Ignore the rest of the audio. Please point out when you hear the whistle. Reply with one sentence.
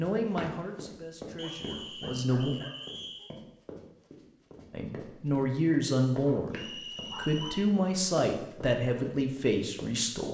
The whistle can be heard from 1.4 to 3.4 s and from 6.5 to 7.7 s.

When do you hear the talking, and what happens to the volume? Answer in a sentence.
The talking can be heard briefly from 0.0 to 2.5 s; and from 4.7 to 10.2 s, at a steady volume.